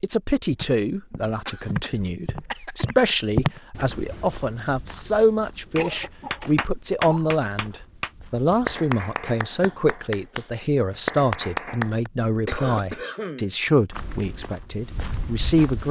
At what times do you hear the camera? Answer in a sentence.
The camera can't be heard in this clip.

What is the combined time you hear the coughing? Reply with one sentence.
You can hear the coughing for 5 seconds altogether.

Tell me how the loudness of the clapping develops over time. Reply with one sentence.
The volume of the clapping goes down, then up.